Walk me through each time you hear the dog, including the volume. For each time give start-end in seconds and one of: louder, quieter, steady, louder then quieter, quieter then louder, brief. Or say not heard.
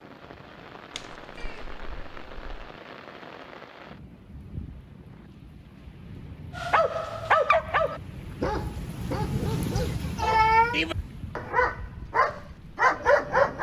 6.5-13.5 quieter then louder.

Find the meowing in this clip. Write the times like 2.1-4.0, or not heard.
0.9-2.5, 9.8-10.8.